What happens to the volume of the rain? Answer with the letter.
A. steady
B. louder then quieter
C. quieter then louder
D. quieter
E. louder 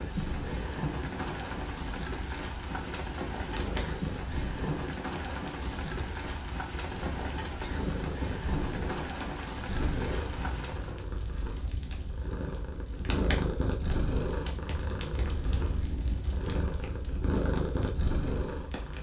A.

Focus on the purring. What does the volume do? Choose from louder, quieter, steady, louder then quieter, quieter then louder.
louder.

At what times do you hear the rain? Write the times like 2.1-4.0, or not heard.
0.0-11.1.